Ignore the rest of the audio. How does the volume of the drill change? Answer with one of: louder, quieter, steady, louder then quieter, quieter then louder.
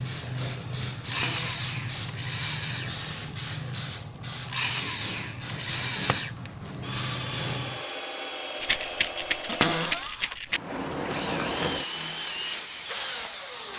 steady.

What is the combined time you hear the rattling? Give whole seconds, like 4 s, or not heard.
2 s.